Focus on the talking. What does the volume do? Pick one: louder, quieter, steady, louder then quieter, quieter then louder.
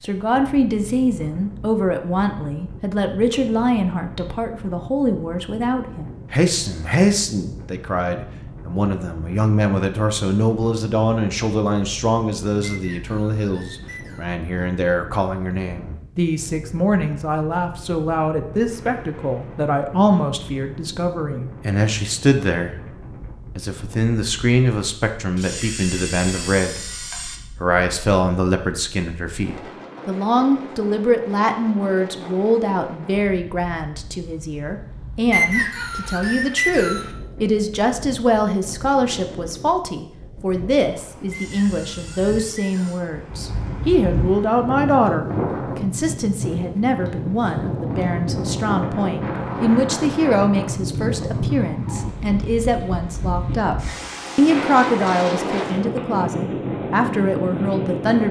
steady.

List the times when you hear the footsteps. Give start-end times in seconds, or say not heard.
not heard.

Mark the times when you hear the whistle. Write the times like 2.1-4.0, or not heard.
12.7-14.3, 35.3-37.1, 41.3-43.0.